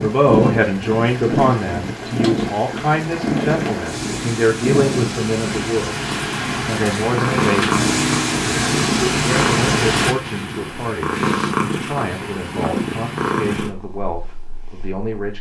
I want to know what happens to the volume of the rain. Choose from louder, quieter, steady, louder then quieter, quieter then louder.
louder.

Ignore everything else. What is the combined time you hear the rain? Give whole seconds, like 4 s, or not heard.
10 s.